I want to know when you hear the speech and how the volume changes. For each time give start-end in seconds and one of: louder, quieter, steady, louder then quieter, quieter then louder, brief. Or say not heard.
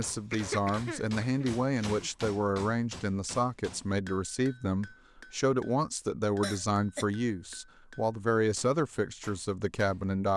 0.0-10.3 steady.